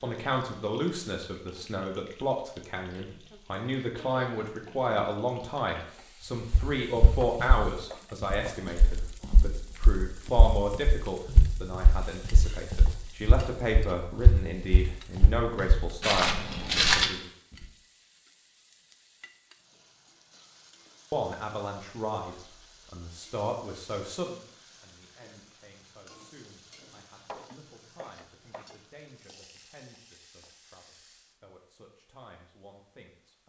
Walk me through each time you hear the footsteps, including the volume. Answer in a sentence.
The footsteps can be heard from 6.5 to 17.1 s, getting quieter then louder.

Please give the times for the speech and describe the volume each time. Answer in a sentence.
You can hear the speech from 0.0 to 17.3 s, at a steady volume; and from 21.1 to 33.4 s, getting quieter.